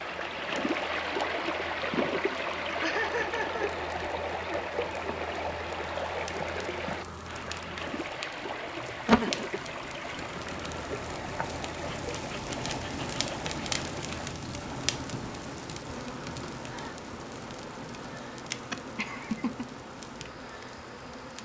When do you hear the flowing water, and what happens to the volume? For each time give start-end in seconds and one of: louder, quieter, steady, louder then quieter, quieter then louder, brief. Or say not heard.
0.0-21.3 quieter.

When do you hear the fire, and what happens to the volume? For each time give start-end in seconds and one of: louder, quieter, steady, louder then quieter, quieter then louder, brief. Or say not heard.
0.1-21.3 louder then quieter.